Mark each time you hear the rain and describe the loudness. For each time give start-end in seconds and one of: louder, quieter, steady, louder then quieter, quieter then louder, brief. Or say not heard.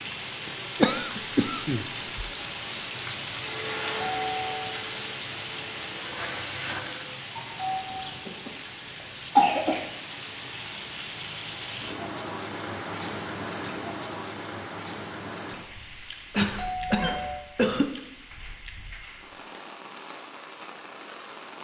0.0-21.5 quieter.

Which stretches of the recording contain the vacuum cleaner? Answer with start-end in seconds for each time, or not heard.
3.4-7.2.